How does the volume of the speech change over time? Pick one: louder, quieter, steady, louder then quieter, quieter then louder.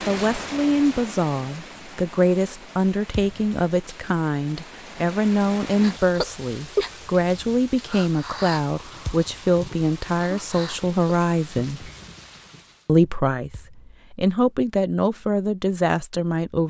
steady.